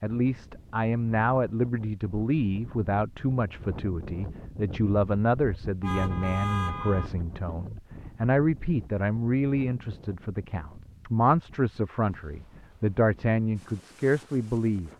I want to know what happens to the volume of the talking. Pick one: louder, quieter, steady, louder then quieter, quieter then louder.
steady.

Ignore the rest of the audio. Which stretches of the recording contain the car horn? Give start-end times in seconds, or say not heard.
5.8-7.1.